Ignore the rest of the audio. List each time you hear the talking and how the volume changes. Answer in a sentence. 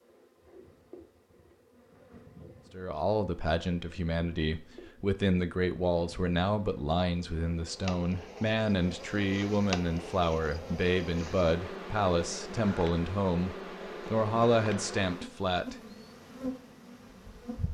You can hear the talking from 2.7 to 15.8 s, at a steady volume.